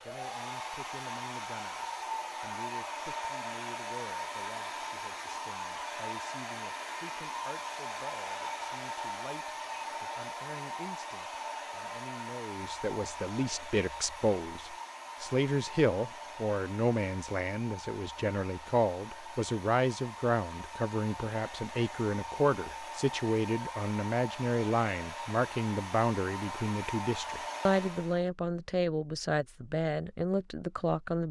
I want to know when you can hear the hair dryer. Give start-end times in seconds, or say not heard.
0.0-28.2.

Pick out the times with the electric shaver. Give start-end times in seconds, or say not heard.
not heard.